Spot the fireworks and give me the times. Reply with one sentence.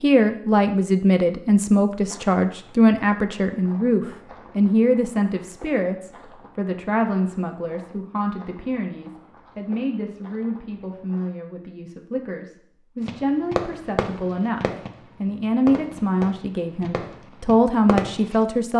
The fireworks can be heard from 13.1 to 18.4 s.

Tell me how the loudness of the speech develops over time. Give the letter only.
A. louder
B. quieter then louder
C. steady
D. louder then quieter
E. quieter
B.